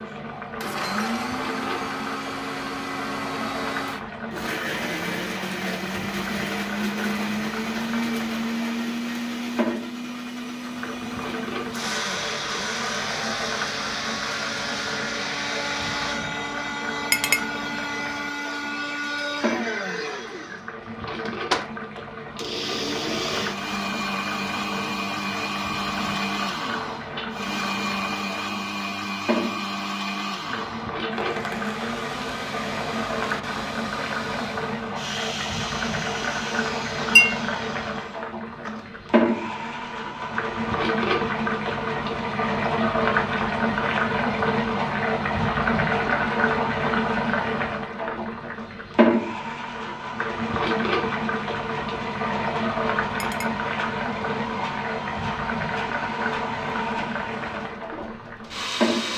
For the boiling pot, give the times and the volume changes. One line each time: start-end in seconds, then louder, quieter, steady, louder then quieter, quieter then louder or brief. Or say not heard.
0.0-59.1 louder.